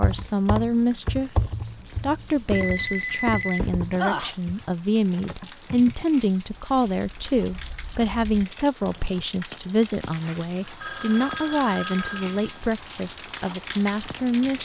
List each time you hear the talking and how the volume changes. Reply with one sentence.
You can hear the talking from 0.0 to 14.6 s, at a steady volume.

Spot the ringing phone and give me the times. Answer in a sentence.
You can hear the ringing phone from 2.5 to 4.3 s and from 10.8 to 12.6 s.